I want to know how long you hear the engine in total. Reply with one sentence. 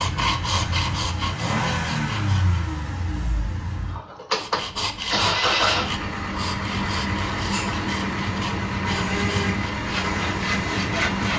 You can hear the engine for 11 seconds altogether.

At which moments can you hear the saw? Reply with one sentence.
The saw can be heard from 0.0 to 2.6 s and from 4.3 to 11.3 s.